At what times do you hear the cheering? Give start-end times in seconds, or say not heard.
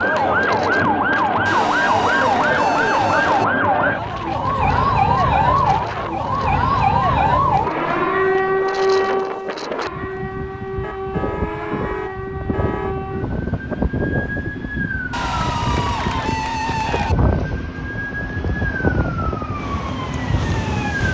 1.4-3.5, 15.1-17.1.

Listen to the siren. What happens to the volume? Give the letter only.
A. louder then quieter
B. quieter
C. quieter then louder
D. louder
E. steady
B.